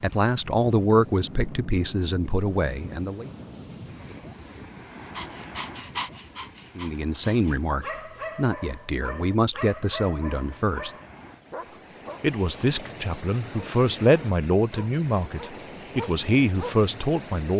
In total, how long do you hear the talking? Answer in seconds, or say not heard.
13 s.